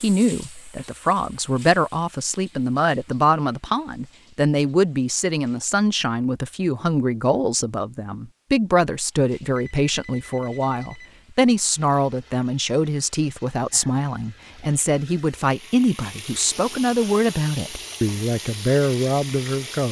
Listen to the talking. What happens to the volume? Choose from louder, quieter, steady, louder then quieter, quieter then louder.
steady.